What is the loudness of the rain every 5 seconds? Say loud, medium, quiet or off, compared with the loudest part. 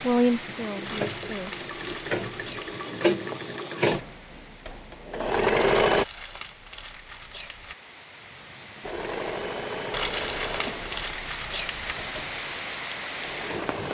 medium, medium, loud.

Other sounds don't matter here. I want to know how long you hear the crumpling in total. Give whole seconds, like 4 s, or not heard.
6 s.